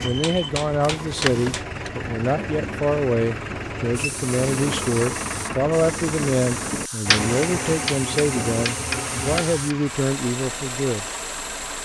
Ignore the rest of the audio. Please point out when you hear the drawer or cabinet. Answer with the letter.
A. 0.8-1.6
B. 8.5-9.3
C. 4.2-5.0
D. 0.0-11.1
A.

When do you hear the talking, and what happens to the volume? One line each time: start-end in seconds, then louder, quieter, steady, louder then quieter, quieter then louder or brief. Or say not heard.
0.0-11.1 steady.